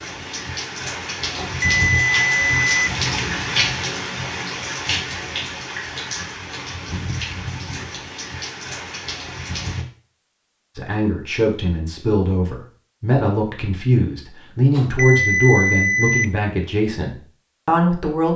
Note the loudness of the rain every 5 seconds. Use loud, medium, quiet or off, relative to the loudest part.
loud, medium, off, off.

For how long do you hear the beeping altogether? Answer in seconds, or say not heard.
3 s.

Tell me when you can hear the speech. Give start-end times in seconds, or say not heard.
10.8-18.3.